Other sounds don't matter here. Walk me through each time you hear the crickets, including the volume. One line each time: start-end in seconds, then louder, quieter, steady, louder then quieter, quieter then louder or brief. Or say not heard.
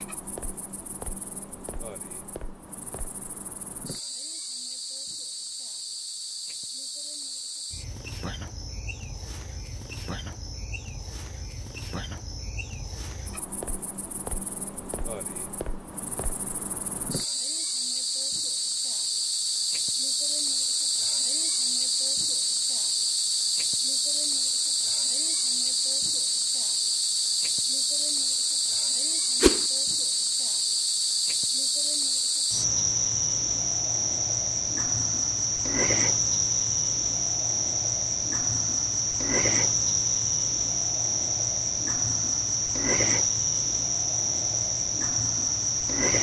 0.0-46.1 louder.